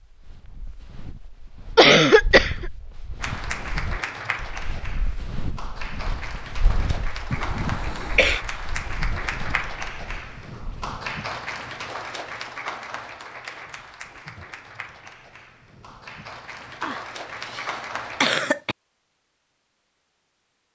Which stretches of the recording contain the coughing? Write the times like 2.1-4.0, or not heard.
1.8-2.6, 7.3-8.4, 16.8-17.6, 18.2-18.8.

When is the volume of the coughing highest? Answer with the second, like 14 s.
2 s.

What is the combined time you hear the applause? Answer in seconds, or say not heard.
15 s.